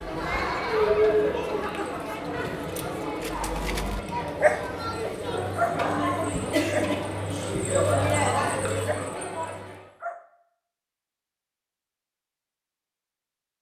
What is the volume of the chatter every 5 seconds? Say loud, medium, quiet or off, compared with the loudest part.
loud, loud, off.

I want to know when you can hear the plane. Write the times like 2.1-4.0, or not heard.
not heard.